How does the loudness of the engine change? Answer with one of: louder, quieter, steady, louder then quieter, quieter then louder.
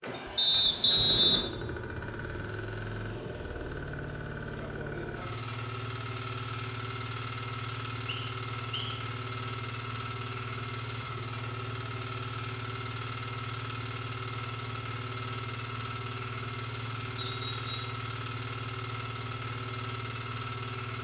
steady.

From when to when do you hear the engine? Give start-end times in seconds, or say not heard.
0.0-20.9.